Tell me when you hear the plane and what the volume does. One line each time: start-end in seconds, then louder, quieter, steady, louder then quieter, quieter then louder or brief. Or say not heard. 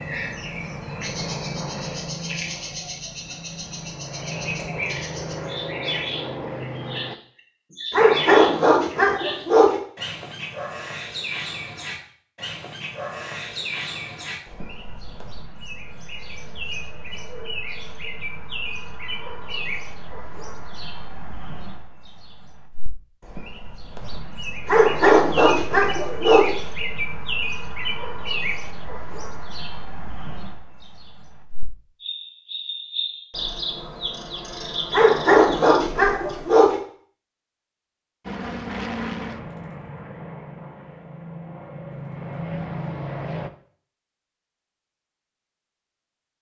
0.0-7.2 quieter then louder
38.2-43.5 quieter then louder.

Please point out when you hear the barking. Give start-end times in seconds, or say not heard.
7.9-9.8, 24.6-26.5, 34.9-36.8.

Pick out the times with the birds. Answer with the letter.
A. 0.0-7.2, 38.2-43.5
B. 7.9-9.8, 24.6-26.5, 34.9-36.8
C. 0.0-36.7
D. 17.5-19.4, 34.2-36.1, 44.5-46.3
C.